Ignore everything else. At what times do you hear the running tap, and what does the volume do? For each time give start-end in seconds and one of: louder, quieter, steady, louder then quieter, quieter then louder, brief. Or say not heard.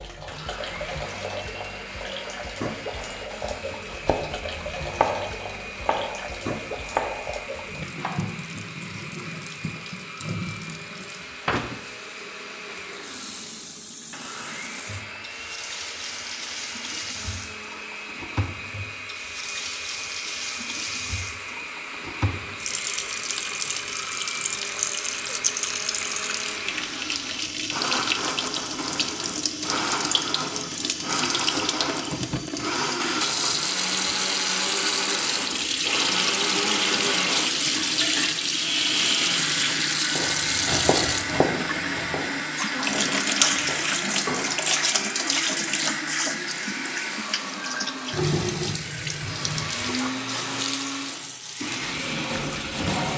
0.0-53.1 louder.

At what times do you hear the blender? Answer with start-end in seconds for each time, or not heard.
0.2-53.1.